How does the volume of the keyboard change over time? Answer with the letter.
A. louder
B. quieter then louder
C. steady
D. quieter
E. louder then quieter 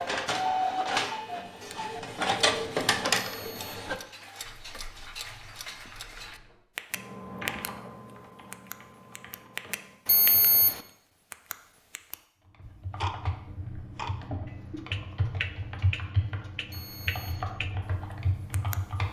A.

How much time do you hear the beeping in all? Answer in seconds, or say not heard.
2 s.